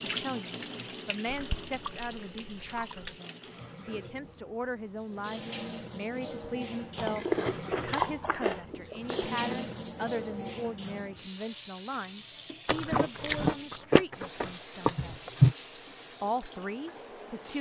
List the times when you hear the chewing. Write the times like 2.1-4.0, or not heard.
1.2-3.1, 7.0-9.6, 12.7-15.6.